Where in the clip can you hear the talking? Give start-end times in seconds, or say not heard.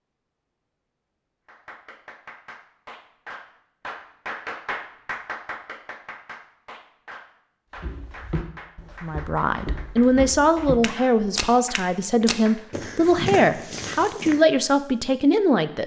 9.0-15.8.